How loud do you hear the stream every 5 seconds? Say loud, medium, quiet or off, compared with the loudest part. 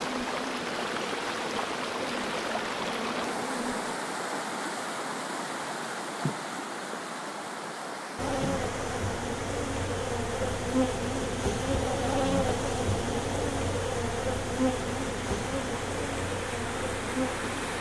loud, loud, medium, loud.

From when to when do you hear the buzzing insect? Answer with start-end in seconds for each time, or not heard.
0.0-4.0, 8.2-17.7.